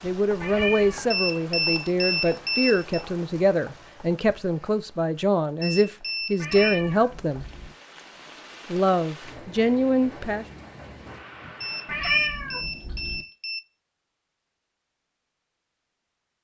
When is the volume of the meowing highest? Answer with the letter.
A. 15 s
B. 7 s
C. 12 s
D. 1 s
C.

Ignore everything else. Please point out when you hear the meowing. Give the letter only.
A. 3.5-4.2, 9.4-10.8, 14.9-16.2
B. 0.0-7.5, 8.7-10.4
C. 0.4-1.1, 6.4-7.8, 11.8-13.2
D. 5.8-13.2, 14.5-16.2
C.